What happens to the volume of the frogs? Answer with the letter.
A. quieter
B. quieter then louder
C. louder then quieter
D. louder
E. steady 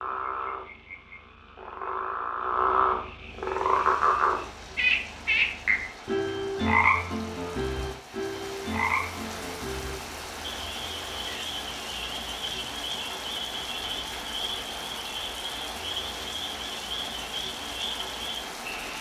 A.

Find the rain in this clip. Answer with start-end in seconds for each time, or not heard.
3.2-18.9.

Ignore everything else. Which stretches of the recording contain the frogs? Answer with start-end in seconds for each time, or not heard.
0.0-18.9.